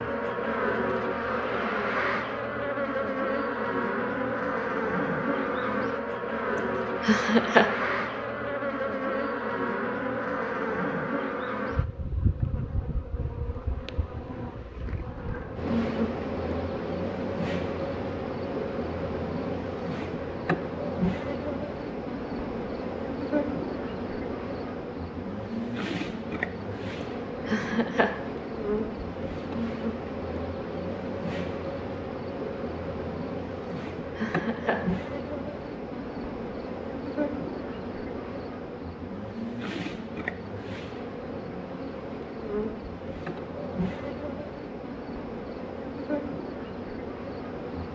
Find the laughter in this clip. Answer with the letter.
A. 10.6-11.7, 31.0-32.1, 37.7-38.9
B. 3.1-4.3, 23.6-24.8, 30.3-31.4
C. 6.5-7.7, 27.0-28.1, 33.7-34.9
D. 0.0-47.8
C.